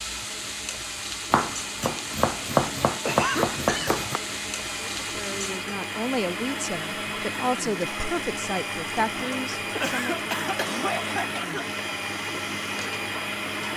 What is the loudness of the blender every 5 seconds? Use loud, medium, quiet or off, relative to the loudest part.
medium, loud, loud.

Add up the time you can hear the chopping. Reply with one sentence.
You can hear the chopping for 3 seconds altogether.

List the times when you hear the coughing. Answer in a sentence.
The coughing can be heard from 3.0 to 4.0 s and from 9.2 to 11.8 s.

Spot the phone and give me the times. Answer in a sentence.
The phone can't be heard in this clip.